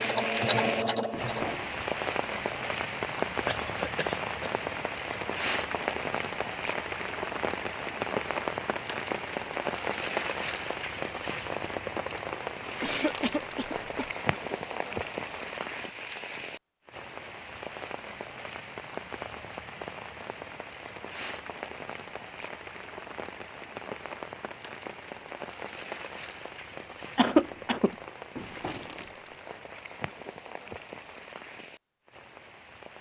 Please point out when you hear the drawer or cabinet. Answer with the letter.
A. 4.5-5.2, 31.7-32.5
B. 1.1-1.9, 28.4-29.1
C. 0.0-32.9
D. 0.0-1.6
B.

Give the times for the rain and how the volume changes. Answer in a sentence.
The rain can be heard from 0.0 to 32.9 s, getting quieter.